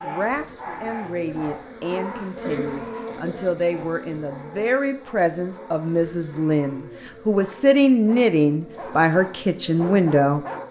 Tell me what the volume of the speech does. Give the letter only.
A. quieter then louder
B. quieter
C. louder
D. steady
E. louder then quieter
C.